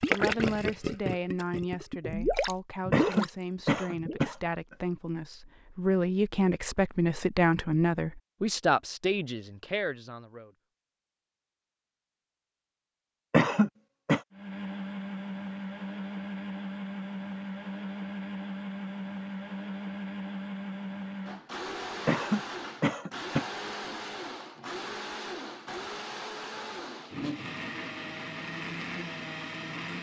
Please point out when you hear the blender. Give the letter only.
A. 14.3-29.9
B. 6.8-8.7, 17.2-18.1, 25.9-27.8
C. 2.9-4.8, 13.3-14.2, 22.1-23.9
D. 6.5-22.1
A.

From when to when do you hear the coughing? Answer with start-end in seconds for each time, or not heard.
2.9-4.8, 13.3-14.2, 22.1-23.9.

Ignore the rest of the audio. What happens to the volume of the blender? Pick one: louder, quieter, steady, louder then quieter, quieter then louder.
steady.